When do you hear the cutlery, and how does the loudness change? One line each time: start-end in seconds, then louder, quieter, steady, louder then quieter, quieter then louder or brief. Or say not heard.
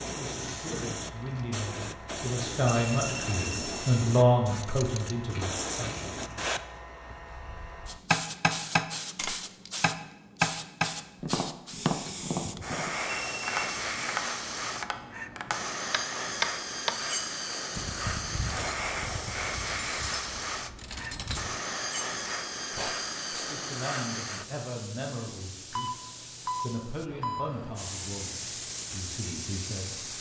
16.9-22.9 steady.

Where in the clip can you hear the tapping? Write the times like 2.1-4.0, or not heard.
7.3-16.9.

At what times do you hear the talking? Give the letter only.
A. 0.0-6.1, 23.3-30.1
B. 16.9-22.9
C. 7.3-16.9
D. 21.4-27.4
A.